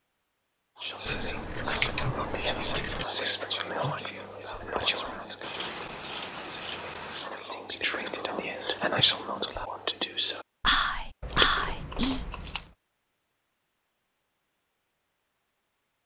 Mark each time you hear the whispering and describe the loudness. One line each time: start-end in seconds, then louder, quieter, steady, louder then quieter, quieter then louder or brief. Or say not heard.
0.8-12.2 quieter then louder.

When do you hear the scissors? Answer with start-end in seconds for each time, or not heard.
1.1-3.0, 5.4-7.3, 11.2-12.6.